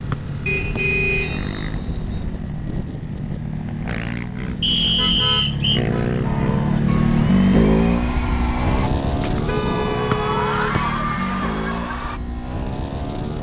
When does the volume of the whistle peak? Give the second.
5 s.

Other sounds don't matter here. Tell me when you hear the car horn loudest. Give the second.
1 s.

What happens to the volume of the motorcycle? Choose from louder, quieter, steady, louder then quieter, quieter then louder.
louder then quieter.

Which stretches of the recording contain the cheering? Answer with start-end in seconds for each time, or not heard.
6.2-12.2.